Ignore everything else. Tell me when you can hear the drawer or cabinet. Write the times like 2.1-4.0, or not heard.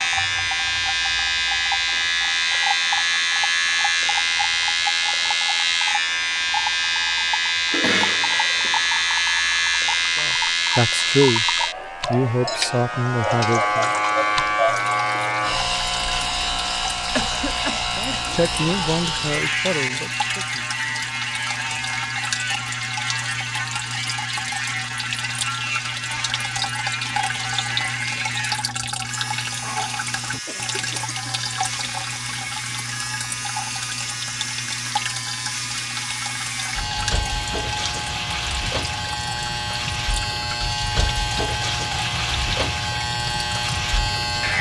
not heard.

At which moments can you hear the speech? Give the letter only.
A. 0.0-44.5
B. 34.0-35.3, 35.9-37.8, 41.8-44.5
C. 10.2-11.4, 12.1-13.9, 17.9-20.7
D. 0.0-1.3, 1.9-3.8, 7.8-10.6
C.